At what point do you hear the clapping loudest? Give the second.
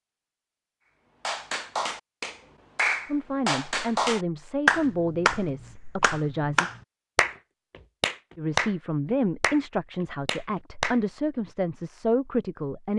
5 s.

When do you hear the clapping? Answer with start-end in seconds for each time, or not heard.
1.2-11.0.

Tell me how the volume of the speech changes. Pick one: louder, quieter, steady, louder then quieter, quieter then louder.
steady.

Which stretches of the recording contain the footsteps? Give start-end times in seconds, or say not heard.
not heard.